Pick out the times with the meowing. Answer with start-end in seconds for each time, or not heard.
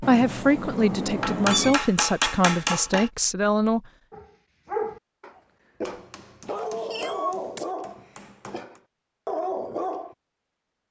0.0-1.8, 6.5-7.7.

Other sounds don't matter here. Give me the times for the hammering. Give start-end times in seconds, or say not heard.
1.2-3.1, 5.8-8.8.